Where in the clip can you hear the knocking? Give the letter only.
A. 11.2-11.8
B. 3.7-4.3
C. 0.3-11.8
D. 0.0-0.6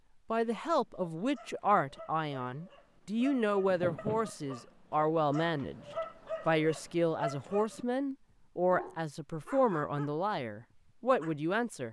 B.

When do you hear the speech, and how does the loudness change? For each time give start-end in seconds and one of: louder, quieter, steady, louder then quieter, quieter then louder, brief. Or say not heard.
0.3-11.8 steady.